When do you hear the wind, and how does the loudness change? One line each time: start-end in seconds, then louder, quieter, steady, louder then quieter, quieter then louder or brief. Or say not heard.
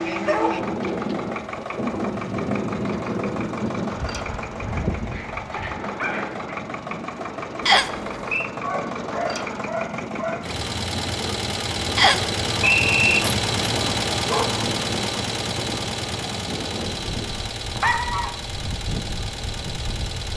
0.0-20.3 quieter.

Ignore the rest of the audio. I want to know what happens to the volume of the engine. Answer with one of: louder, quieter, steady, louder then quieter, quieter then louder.
louder then quieter.